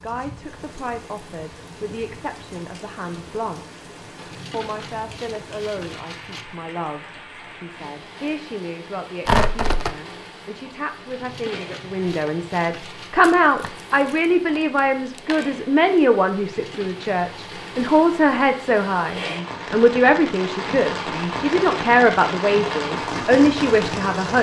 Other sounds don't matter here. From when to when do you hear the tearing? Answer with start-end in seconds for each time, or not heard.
9.2-9.9, 13.2-15.4.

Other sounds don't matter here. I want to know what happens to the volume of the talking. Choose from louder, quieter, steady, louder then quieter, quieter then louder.
louder.